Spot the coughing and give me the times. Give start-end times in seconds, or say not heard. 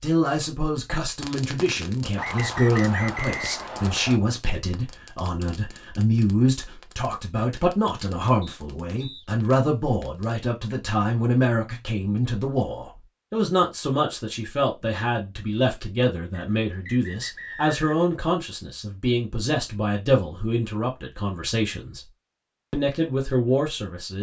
not heard.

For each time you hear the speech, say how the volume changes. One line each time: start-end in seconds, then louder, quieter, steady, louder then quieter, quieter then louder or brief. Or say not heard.
0.0-22.1 steady
22.7-24.1 brief.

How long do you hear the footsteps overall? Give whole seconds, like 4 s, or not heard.
not heard.